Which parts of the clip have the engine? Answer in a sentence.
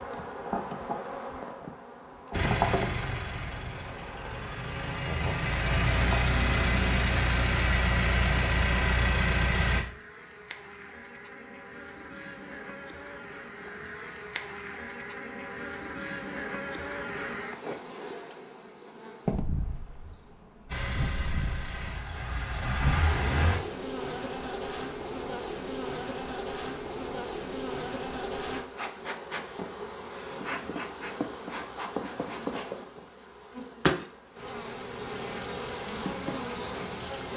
The engine can be heard from 2.3 to 9.8 s and from 20.6 to 23.6 s.